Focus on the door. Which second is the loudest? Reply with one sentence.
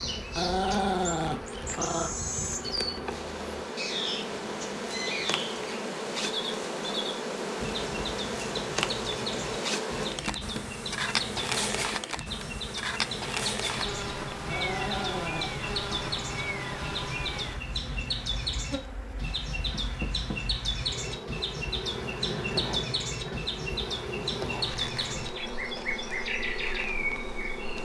The loudest moment of the door is at 20 seconds.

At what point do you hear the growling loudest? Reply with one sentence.
The volume of the growling peaks at 1 second.